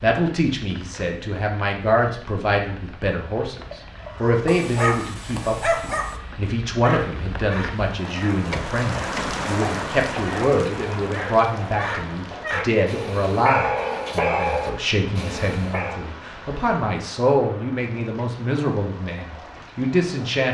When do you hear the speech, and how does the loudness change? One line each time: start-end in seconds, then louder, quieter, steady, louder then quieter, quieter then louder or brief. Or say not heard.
0.0-20.4 steady.